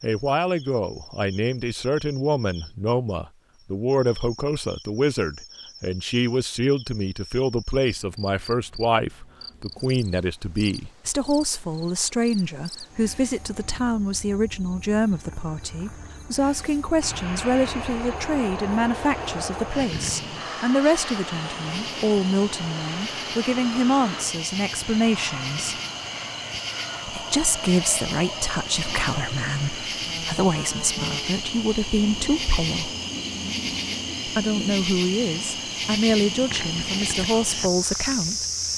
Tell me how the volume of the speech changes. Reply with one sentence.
The loudness of the speech stays about the same.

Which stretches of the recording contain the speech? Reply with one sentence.
You can hear the speech from 0.0 to 25.8 s, from 27.1 to 32.9 s and from 34.2 to 38.5 s.